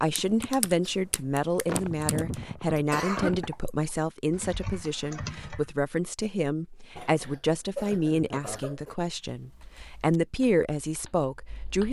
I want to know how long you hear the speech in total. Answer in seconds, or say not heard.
12 s.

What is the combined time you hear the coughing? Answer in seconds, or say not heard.
4 s.